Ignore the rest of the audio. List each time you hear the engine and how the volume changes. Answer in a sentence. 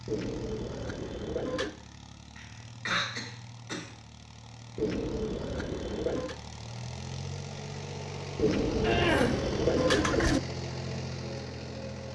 You can hear the engine from 0.0 to 12.1 s, getting louder.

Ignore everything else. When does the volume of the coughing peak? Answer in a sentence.
The volume of the coughing peaks at 9 seconds.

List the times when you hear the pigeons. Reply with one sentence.
The pigeons can be heard from 0.1 to 1.8 s, from 4.8 to 6.3 s and from 8.3 to 10.4 s.